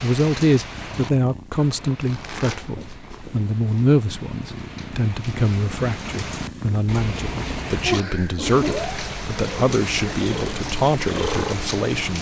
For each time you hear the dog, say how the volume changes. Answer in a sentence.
The dog can't be heard in this clip.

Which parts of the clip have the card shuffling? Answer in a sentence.
The card shuffling can be heard from 1.9 to 3.5 s.